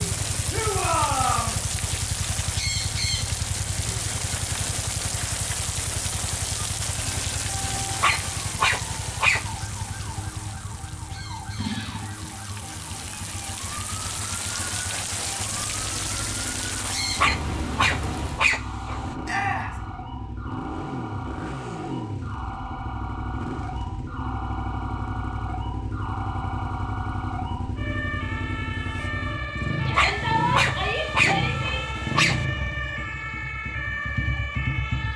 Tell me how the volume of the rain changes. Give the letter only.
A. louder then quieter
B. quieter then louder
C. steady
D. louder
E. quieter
B.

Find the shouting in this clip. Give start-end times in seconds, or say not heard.
0.5-1.6, 19.2-19.8, 29.9-31.9.